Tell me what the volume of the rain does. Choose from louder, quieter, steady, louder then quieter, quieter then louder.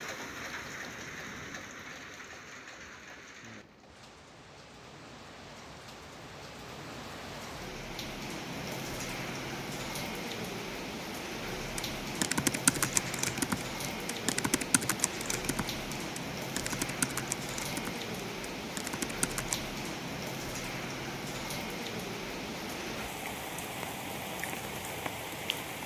louder.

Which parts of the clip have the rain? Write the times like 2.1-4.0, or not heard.
0.0-25.8.